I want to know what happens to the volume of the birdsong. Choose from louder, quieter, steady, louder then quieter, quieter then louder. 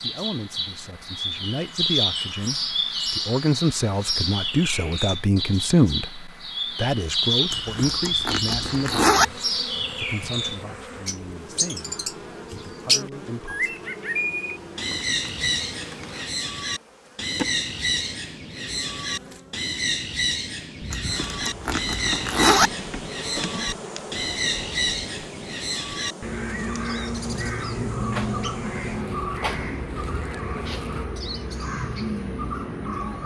steady.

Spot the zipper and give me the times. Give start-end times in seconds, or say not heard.
7.5-9.2, 20.9-22.7.